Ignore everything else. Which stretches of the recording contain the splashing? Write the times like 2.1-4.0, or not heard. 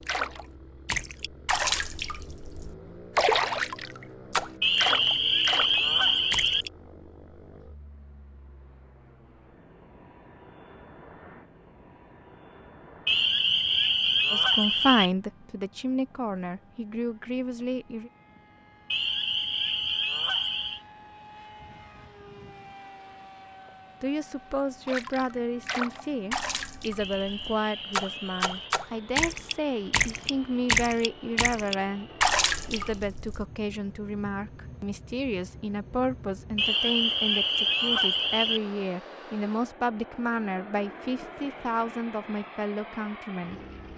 0.0-6.7, 24.9-33.5.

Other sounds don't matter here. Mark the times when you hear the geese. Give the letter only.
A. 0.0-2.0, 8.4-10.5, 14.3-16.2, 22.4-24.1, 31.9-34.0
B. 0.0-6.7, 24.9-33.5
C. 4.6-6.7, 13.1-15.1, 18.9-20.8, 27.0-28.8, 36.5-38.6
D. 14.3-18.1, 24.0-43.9
C.